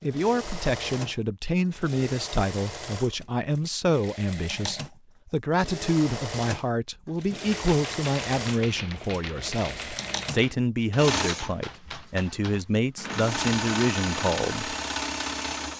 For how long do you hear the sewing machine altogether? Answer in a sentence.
The sewing machine can be heard for 16 seconds in total.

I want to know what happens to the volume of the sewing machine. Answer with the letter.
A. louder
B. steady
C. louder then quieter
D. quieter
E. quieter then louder
A.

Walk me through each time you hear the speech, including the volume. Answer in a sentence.
You can hear the speech from 0.0 to 14.8 s, at a steady volume.